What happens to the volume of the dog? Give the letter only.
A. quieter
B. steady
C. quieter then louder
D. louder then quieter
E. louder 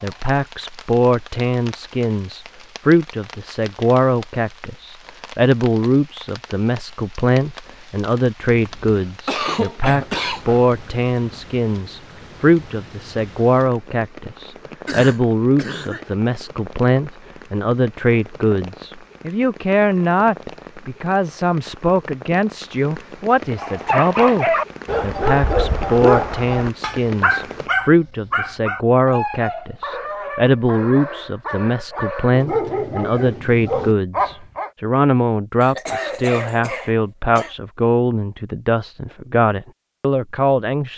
C.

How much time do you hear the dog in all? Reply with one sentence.
The dog can be heard for 11 seconds in total.